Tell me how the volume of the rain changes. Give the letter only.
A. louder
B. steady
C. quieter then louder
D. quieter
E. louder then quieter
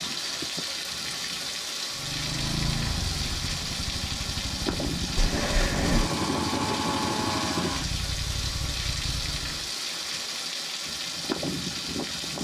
B.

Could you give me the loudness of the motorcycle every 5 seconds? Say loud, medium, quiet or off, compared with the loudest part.
loud, loud, off.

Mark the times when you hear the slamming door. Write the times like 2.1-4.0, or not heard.
5.2-6.1.